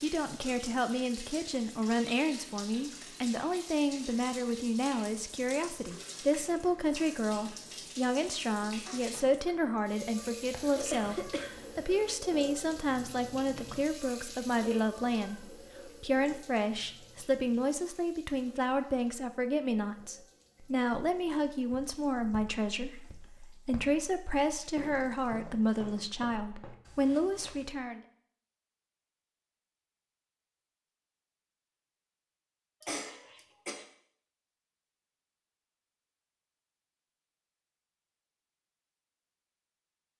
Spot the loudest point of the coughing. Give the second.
11 s.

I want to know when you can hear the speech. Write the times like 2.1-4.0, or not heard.
0.0-28.0.